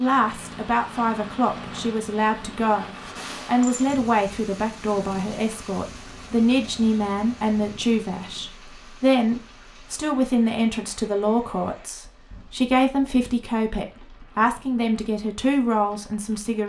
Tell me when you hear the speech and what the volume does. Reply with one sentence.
You can hear the speech from 0.0 to 16.6 s, at a steady volume.